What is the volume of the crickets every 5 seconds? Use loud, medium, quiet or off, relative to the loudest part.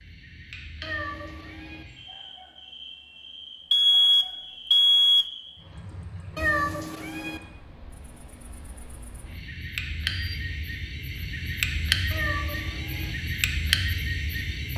quiet, quiet, loud.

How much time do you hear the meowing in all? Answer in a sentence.
You can hear the meowing for 3 seconds altogether.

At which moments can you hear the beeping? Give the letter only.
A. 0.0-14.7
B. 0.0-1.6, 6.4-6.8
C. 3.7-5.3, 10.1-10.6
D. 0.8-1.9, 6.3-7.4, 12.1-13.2
C.